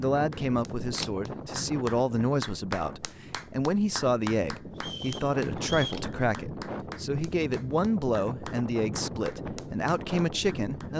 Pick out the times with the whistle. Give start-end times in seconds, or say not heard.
4.8-6.0.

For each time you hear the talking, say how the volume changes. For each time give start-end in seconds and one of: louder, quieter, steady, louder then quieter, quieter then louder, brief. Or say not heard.
0.0-10.9 steady.